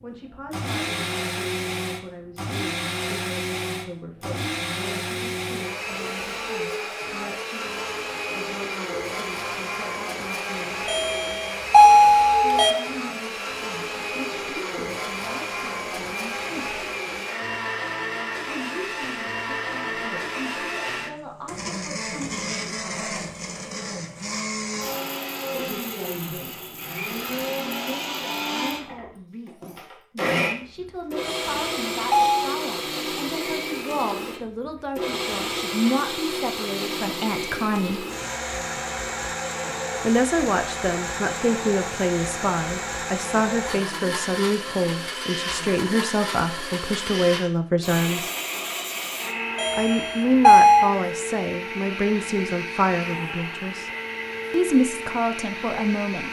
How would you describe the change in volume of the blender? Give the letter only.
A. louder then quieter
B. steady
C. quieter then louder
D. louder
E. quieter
B.